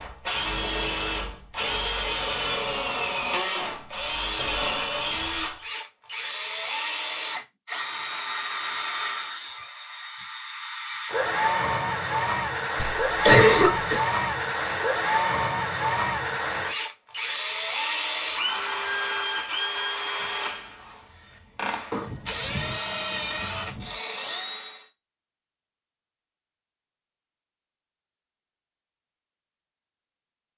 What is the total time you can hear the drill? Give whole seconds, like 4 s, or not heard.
25 s.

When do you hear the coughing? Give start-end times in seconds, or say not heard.
12.8-14.0.